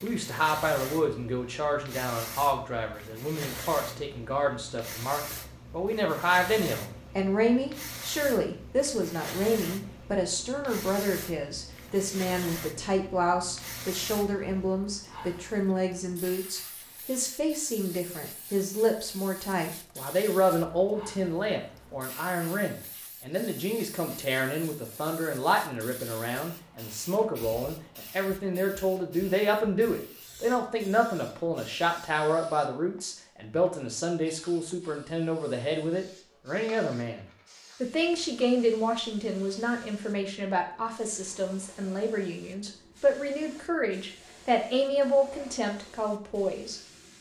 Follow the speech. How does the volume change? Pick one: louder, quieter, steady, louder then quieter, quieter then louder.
steady.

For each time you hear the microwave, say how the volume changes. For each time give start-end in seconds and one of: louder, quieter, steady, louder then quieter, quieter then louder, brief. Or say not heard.
not heard.